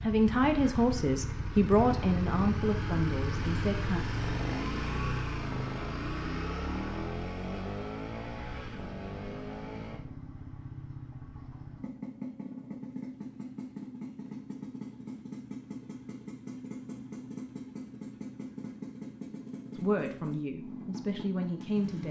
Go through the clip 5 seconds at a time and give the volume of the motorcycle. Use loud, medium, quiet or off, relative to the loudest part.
loud, loud, medium, medium, medium.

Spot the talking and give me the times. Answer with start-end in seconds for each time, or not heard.
0.0-4.0, 19.8-22.0.